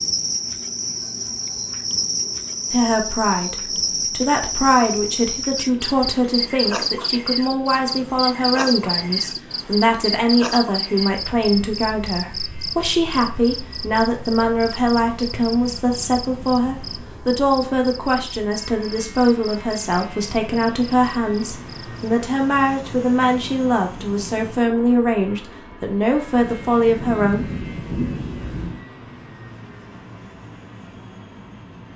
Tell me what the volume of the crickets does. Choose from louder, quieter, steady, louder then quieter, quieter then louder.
quieter.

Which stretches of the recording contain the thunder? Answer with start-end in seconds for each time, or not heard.
26.3-28.9.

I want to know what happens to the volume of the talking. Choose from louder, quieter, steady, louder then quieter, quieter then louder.
steady.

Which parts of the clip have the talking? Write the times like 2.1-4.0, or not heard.
2.7-27.4.